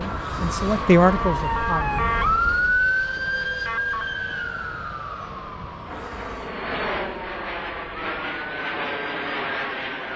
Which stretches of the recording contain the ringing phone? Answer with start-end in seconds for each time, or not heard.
not heard.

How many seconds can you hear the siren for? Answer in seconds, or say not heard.
10 s.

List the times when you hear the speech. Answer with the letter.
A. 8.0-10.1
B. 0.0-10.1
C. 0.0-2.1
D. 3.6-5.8
C.